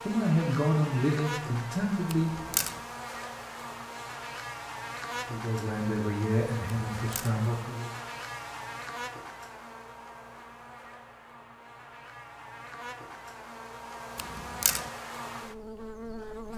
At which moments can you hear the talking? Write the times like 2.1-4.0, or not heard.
0.0-2.3, 5.2-7.9.